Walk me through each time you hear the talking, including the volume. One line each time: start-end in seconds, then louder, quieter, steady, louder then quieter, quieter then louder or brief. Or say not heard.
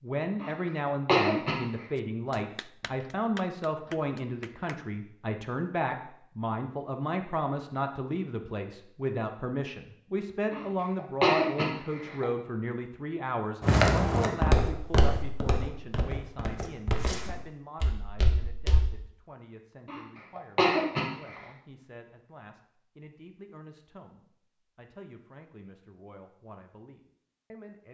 0.0-27.8 quieter.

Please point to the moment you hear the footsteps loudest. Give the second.
14 s.